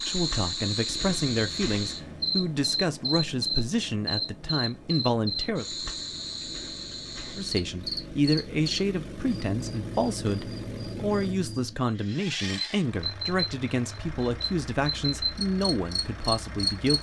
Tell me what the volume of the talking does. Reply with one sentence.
The loudness of the talking stays about the same.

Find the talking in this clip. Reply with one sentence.
You can hear the talking from 0.0 to 5.7 s and from 7.3 to 16.9 s.